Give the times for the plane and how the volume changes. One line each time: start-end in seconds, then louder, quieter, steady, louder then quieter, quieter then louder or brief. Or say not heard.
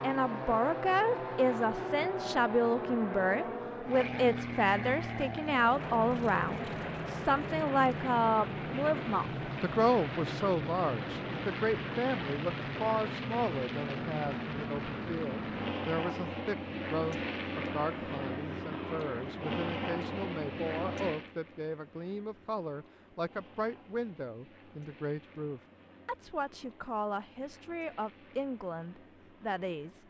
0.0-30.0 quieter.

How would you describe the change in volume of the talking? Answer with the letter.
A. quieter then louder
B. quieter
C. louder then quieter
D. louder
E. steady
B.